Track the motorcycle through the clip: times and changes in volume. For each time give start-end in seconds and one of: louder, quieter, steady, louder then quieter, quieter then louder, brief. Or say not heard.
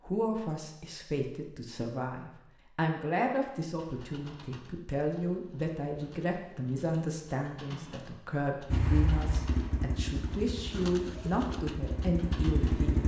8.7-13.0 quieter then louder.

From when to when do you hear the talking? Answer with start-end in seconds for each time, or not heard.
0.1-13.0.